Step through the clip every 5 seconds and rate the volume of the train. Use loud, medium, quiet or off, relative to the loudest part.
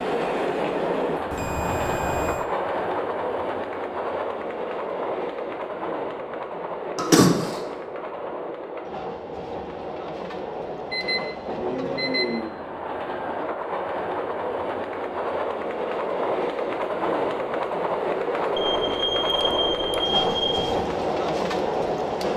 loud, medium, medium, loud, loud.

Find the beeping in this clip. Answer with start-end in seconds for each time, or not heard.
1.3-2.5, 10.9-12.6, 18.6-20.8.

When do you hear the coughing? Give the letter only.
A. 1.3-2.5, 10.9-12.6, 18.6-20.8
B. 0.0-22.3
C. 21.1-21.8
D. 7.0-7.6
D.